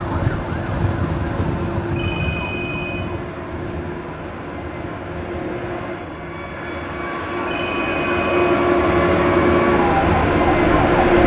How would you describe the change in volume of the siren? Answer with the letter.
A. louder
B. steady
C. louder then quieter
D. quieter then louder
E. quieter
D.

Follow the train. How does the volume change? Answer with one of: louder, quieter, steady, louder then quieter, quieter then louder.
louder.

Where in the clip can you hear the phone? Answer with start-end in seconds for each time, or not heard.
1.9-3.0, 7.5-8.3.